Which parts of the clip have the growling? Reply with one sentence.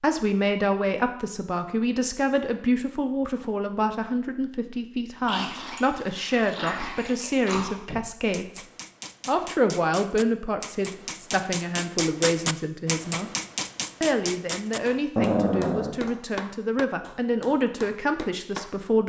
The growling can be heard from 5.2 to 7.8 s and from 15.2 to 16.1 s.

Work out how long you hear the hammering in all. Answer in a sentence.
You can hear the hammering for 11 seconds altogether.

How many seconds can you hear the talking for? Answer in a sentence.
You can hear the talking for 18 seconds altogether.